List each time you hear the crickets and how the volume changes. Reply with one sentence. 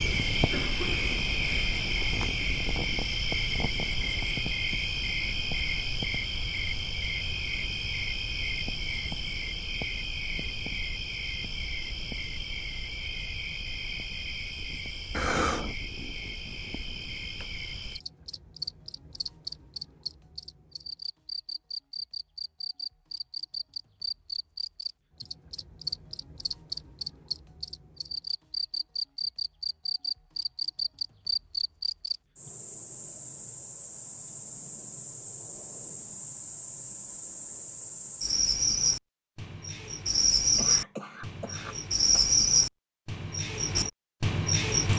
You can hear the crickets from 0.0 to 44.9 s, getting quieter then louder.